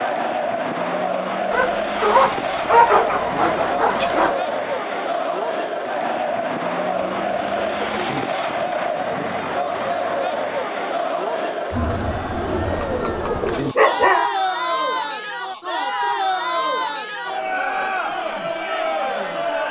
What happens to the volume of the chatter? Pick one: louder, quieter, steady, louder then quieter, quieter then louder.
steady.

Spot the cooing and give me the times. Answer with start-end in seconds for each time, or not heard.
7.0-8.2, 12.4-13.8.